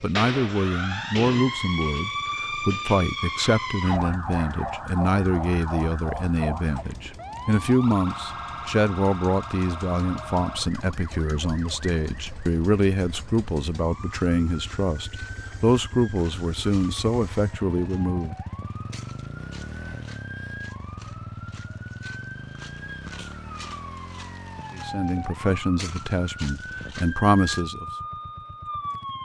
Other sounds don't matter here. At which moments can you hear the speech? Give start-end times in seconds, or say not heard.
0.0-18.4, 24.7-27.9.